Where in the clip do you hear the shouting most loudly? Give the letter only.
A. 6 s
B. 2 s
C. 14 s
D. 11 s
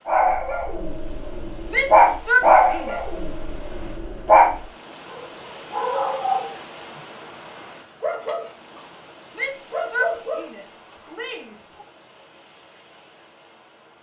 B.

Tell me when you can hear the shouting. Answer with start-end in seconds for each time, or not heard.
1.7-3.1, 9.3-11.8.